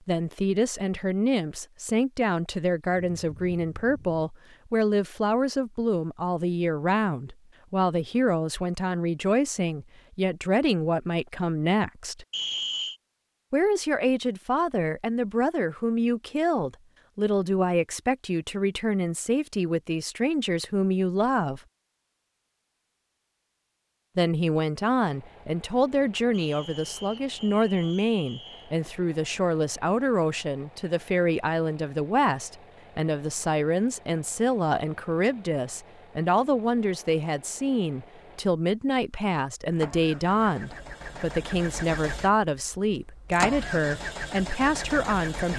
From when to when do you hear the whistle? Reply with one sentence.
The whistle can be heard from 12.3 to 12.9 s and from 26.3 to 28.8 s.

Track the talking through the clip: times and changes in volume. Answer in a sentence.
You can hear the talking from 0.1 to 12.2 s, at a steady volume; from 13.5 to 21.6 s, at a steady volume; and from 24.1 to 45.5 s, at a steady volume.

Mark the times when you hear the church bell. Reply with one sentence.
The church bell can't be heard in this clip.